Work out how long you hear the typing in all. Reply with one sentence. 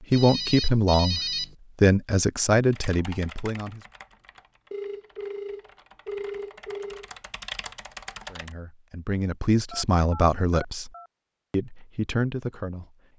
You can hear the typing for 6 seconds altogether.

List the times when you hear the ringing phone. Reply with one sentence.
The ringing phone can be heard from 0.1 to 1.6 s, from 4.7 to 7.1 s and from 9.7 to 11.1 s.